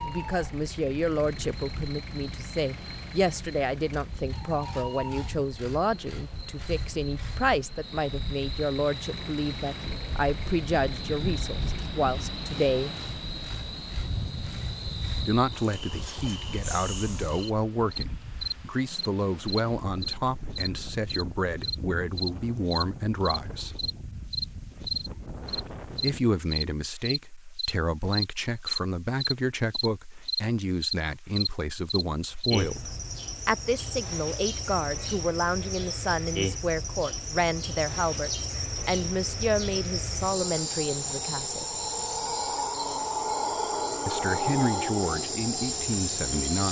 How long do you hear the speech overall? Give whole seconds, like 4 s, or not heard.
40 s.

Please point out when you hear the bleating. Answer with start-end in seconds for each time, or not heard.
not heard.